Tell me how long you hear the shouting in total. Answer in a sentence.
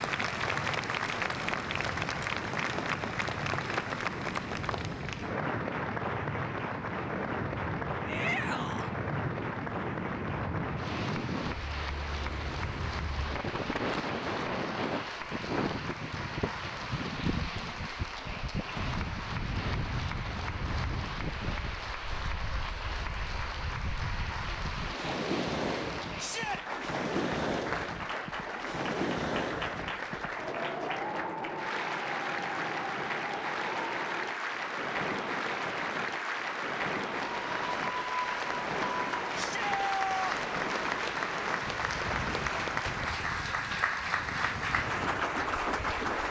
The shouting can be heard for 2 seconds in total.